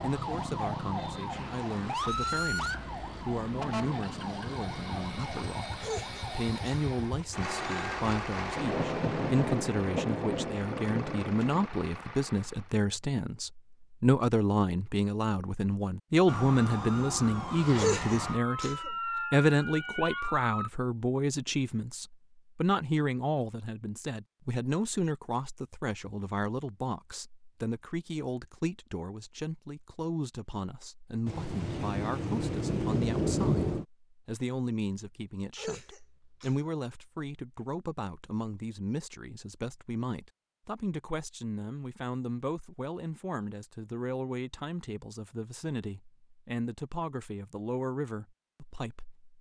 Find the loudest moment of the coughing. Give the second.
18 s.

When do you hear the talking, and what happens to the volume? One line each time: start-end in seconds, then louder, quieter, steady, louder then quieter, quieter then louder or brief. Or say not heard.
0.0-49.2 louder then quieter.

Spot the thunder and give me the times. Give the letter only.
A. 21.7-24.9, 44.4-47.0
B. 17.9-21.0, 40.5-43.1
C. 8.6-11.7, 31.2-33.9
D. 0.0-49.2
C.